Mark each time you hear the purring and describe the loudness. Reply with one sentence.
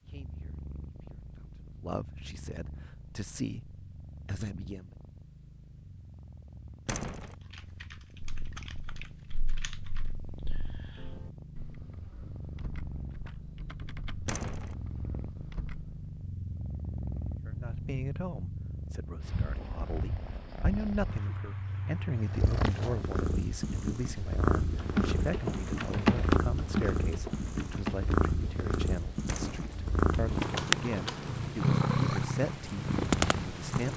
The purring can be heard from 0.0 to 33.9 s, getting louder.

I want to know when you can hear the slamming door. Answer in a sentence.
You can hear the slamming door from 6.8 to 7.3 s, from 14.2 to 14.8 s and from 29.2 to 29.8 s.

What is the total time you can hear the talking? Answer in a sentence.
The talking can be heard for 21 seconds in total.